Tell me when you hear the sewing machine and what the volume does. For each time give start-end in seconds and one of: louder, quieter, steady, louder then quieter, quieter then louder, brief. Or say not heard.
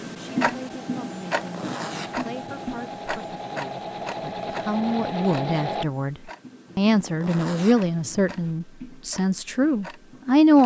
0.1-5.8 louder.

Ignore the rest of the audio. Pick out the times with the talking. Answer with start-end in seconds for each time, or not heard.
0.0-10.6.